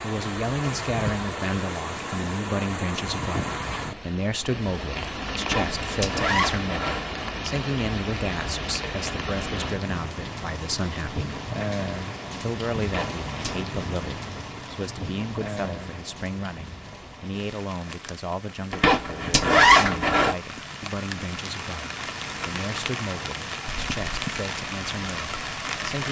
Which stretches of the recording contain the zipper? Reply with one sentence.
The zipper can be heard from 5.4 to 7.0 s, from 12.8 to 13.7 s and from 18.7 to 20.4 s.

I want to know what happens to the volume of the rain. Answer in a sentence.
The volume of the rain goes down, then up.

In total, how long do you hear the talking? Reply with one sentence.
You can hear the talking for 25 seconds altogether.